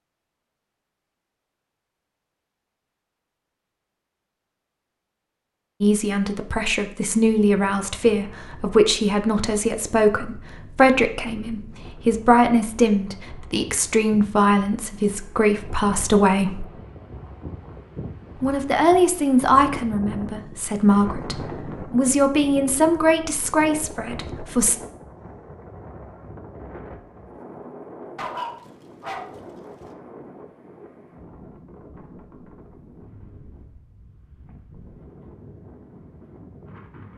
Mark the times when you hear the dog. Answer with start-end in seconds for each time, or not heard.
28.1-29.9.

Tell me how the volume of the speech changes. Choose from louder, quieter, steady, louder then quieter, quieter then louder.
steady.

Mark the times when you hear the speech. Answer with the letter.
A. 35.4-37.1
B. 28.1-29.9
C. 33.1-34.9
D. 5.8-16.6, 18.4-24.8
D.